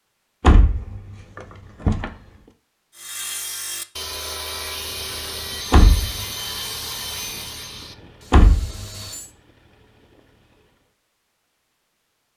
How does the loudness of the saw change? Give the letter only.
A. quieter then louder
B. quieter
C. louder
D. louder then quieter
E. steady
B.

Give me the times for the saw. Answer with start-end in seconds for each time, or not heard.
3.0-9.3.